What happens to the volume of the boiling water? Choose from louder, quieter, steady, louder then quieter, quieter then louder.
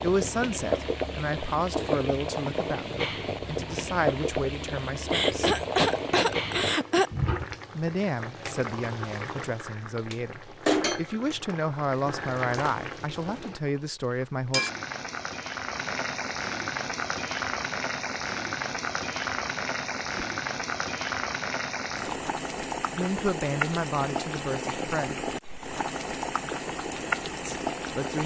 steady.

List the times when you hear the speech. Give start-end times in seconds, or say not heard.
0.0-5.5, 7.8-14.6, 22.9-25.3, 27.4-28.2.